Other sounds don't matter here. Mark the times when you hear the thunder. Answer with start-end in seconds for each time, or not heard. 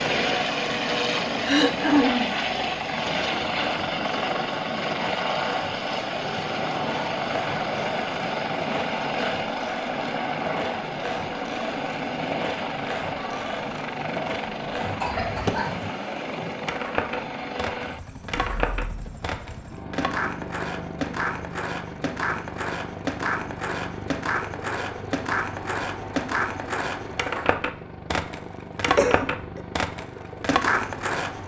not heard.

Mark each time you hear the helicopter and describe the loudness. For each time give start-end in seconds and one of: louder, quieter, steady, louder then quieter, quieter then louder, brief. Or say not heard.
0.0-31.4 quieter.